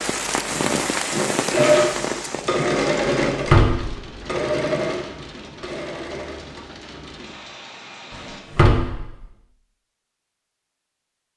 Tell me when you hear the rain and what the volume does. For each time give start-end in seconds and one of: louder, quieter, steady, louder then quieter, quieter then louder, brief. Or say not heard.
0.0-8.4 quieter.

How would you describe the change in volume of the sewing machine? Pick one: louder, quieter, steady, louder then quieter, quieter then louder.
quieter.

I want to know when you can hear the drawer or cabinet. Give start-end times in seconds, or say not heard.
3.5-4.0, 8.2-9.1.